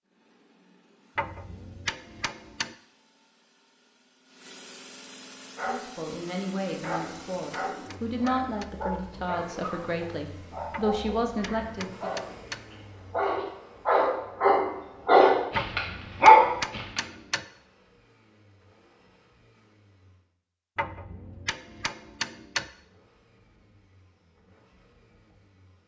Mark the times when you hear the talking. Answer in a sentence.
The talking can be heard from 5.7 to 12.1 s.